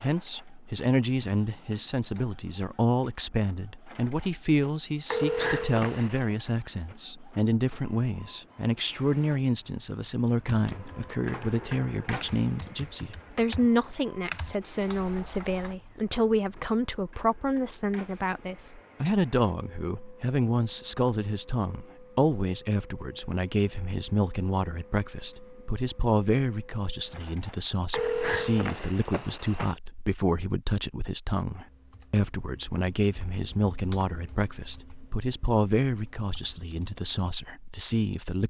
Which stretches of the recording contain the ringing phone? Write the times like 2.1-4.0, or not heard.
5.1-6.3, 27.9-29.8.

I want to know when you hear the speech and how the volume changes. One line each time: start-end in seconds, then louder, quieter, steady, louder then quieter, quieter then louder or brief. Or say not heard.
0.0-38.4 steady.